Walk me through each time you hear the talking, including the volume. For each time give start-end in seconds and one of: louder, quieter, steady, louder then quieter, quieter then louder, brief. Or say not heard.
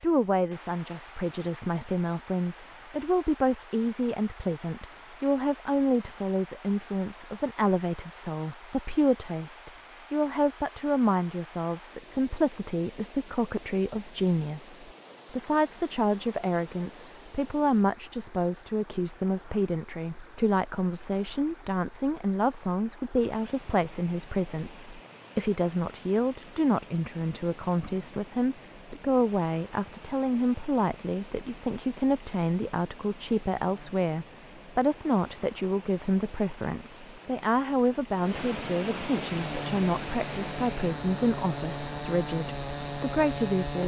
0.0-43.8 steady.